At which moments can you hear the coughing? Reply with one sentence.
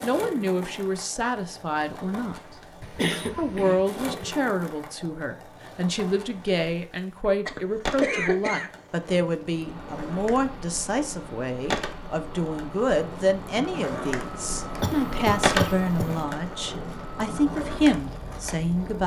You can hear the coughing from 2.8 to 4.0 s, from 7.5 to 9.1 s and from 14.8 to 16.2 s.